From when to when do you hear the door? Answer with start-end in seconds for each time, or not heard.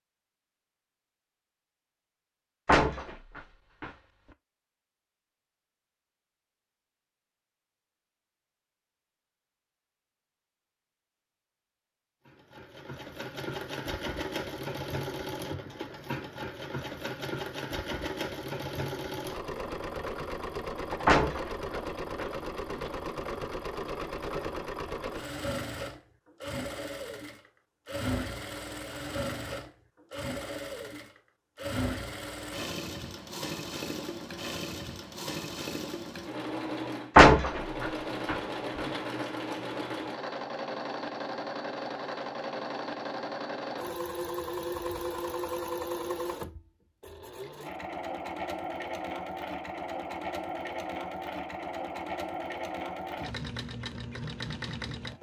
2.6-3.9, 21.1-22.9, 37.1-38.4.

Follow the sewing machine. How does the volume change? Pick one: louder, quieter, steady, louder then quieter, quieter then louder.
steady.